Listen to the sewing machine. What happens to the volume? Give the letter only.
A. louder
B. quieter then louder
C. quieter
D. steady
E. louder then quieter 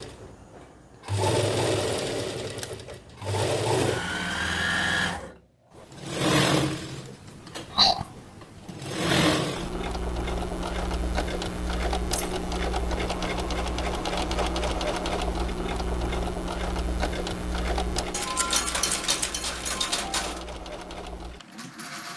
C.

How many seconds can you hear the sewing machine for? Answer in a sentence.
The sewing machine can be heard for 22 seconds in total.